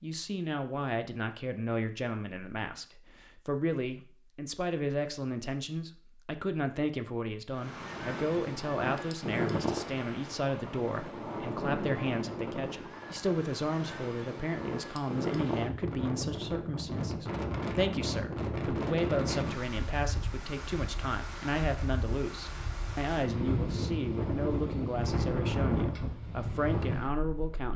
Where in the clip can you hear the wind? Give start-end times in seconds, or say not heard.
7.5-27.6.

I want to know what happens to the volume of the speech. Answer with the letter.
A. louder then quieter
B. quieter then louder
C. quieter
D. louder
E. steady
E.